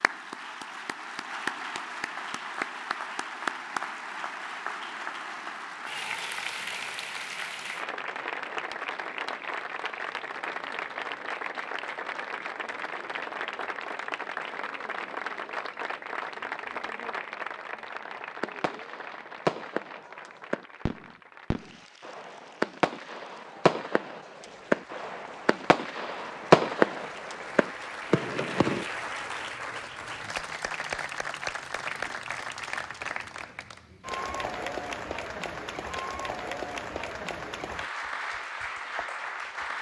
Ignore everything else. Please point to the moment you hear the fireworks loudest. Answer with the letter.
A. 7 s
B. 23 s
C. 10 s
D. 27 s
D.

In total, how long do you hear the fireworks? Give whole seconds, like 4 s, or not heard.
11 s.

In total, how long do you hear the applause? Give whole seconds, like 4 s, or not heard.
40 s.